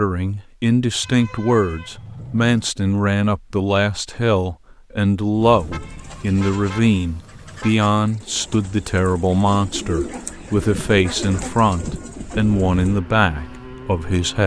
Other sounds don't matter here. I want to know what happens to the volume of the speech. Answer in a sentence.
The loudness of the speech stays about the same.